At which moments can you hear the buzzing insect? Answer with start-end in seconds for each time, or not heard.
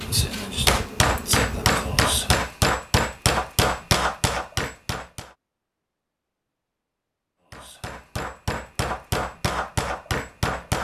0.0-2.5.